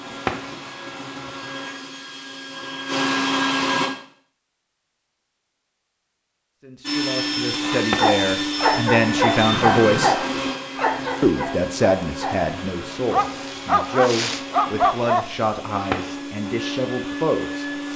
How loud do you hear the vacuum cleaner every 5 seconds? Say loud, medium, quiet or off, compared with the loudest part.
loud, loud, medium, medium.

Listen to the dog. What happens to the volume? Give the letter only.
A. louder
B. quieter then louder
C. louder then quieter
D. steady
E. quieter
B.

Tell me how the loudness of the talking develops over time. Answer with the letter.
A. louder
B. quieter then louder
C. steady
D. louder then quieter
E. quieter
D.